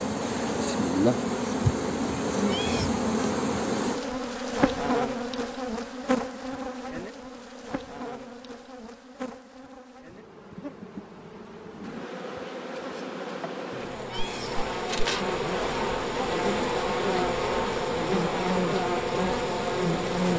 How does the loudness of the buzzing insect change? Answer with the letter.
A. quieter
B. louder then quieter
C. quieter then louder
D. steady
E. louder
C.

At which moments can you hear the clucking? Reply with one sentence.
You can't hear the clucking here.